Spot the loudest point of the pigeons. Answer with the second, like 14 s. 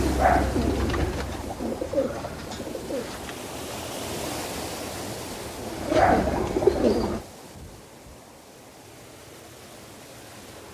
7 s.